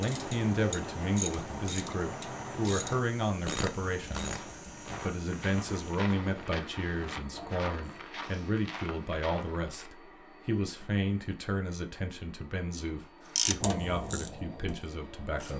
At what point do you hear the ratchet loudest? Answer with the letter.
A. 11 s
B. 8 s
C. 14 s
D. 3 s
C.